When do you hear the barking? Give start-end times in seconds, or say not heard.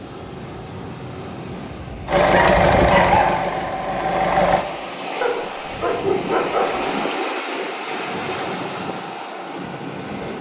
2.3-3.2, 5.2-6.9.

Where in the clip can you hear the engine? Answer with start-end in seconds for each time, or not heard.
2.0-4.7.